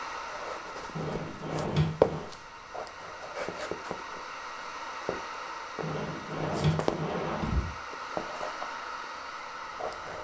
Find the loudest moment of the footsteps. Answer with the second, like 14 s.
2 s.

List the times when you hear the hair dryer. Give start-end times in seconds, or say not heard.
0.0-10.1.